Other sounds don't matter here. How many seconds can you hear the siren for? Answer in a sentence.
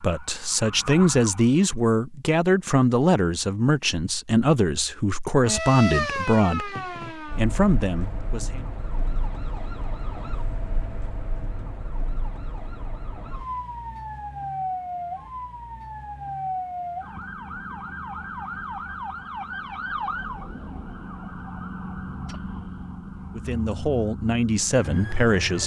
You can hear the siren for 22 seconds altogether.